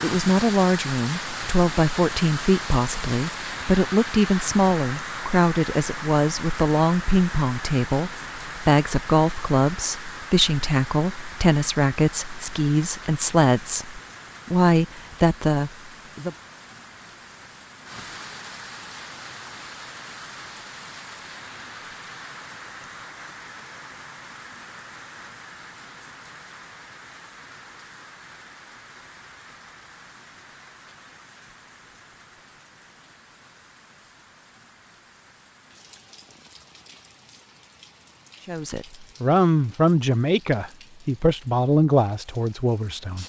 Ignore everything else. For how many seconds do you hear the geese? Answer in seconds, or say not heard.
not heard.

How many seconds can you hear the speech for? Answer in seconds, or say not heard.
21 s.